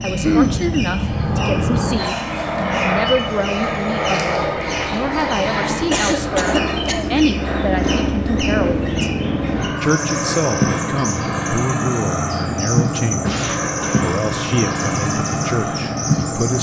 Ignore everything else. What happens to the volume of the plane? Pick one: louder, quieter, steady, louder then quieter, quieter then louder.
steady.